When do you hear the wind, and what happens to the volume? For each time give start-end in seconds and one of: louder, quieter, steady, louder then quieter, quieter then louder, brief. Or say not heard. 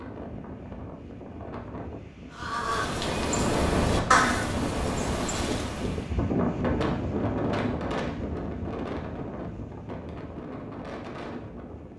0.0-11.9 louder then quieter.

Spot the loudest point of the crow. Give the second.
4 s.